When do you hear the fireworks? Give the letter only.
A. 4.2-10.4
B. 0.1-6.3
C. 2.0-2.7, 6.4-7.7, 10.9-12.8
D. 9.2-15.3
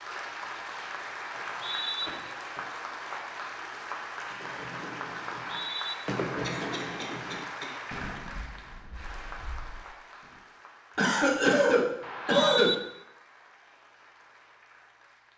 A.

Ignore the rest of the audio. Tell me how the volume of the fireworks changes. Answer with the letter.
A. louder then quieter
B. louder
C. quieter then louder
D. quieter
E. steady
A.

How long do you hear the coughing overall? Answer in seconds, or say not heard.
4 s.